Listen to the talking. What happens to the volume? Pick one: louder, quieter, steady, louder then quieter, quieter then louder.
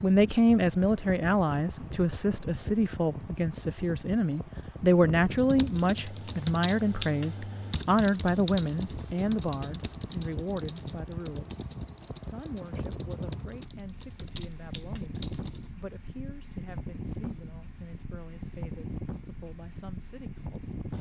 quieter.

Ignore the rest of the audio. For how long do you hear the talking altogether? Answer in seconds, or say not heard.
20 s.